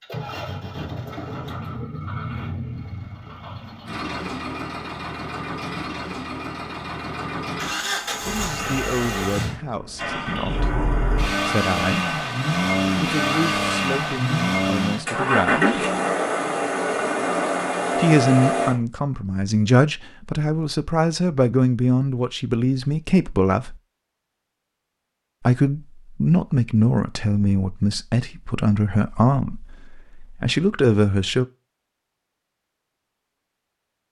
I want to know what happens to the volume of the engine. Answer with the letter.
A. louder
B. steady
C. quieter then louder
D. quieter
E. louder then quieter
A.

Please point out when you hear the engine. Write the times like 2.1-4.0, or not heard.
0.0-18.8.